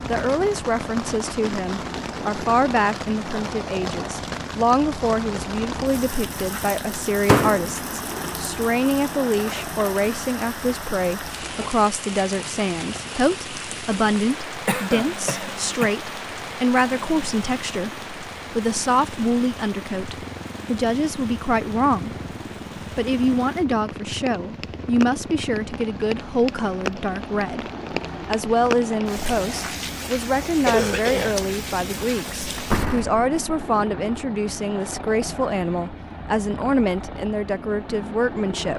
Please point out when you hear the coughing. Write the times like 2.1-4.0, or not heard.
14.7-15.9, 30.6-31.4.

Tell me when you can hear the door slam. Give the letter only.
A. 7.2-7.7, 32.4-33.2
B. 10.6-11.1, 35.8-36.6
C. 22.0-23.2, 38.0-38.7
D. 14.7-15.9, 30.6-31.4
A.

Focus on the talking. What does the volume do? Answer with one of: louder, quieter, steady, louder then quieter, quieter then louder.
steady.